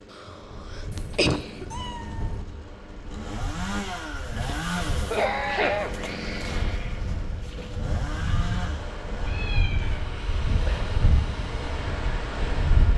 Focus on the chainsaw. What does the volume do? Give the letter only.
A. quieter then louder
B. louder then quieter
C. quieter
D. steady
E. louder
B.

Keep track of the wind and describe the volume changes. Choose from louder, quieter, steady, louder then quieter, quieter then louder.
louder.